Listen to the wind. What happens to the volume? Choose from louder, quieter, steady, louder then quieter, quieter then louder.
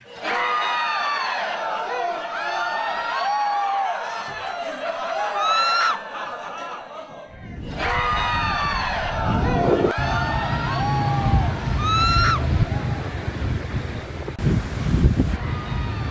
louder.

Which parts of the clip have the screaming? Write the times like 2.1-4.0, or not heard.
5.3-6.0, 11.8-12.4.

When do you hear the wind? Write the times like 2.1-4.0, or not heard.
7.3-16.0.